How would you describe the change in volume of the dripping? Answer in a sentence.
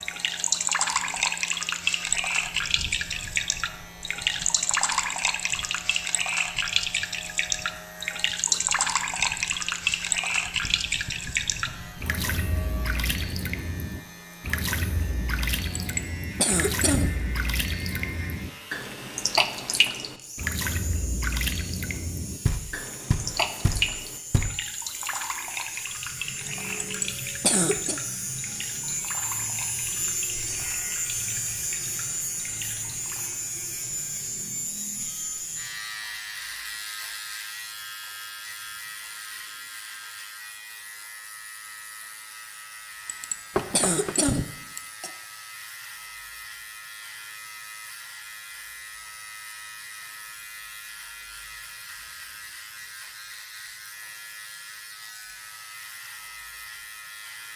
The loudness of the dripping goes down.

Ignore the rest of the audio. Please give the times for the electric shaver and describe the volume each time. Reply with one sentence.
The electric shaver can be heard from 0.0 to 57.5 s, getting louder then quieter.